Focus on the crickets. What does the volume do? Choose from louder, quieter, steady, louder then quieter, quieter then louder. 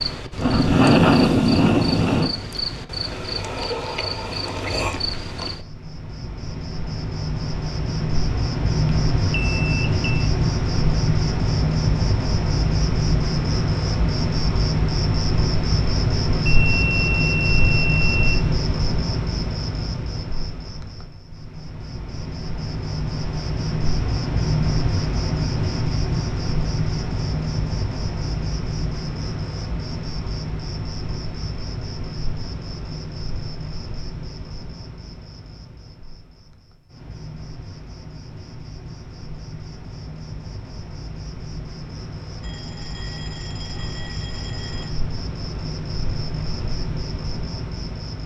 quieter.